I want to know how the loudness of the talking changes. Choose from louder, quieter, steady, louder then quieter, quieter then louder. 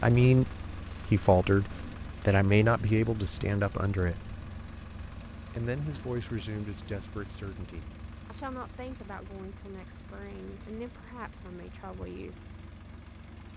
quieter.